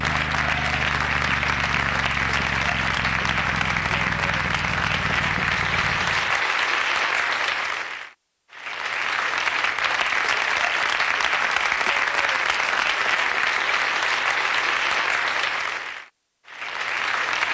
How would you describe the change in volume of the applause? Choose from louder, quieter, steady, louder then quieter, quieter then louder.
steady.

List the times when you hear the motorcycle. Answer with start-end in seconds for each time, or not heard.
0.0-6.5.